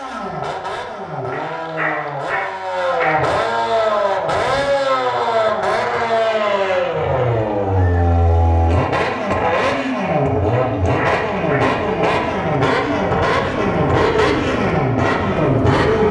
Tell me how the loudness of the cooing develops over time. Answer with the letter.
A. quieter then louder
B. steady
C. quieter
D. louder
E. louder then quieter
D.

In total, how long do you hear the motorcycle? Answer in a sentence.
The motorcycle can be heard for 16 seconds in total.